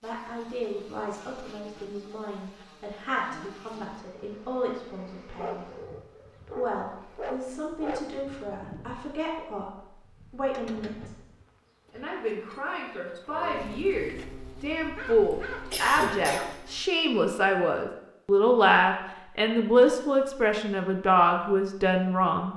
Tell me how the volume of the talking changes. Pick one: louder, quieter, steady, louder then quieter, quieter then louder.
louder.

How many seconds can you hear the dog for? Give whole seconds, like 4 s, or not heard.
4 s.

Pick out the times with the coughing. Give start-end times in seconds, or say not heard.
15.7-16.5.